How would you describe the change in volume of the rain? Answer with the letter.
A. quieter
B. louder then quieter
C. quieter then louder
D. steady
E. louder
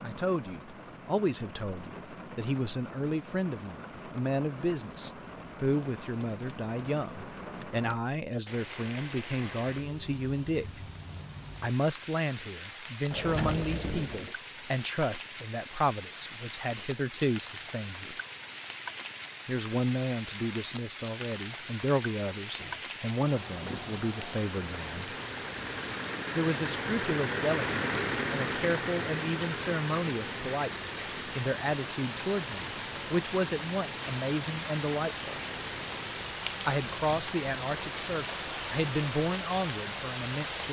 E.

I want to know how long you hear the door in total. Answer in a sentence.
You can hear the door for 2 seconds altogether.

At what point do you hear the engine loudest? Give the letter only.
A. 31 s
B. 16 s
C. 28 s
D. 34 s
C.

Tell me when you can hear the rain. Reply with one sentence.
The rain can be heard from 0.0 to 40.6 s.